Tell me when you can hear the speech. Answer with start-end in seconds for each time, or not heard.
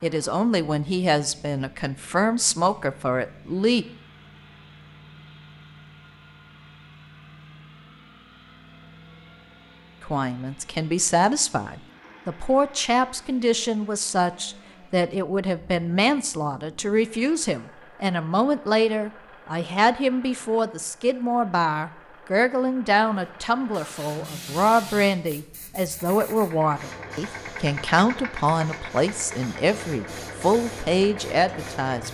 0.0-3.9, 10.0-32.0.